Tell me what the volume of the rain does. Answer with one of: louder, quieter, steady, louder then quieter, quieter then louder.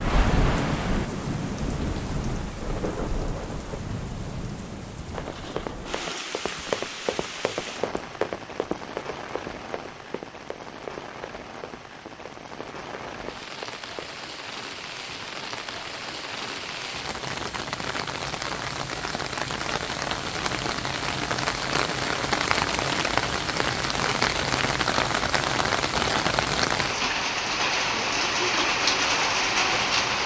quieter then louder.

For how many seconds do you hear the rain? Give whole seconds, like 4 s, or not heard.
30 s.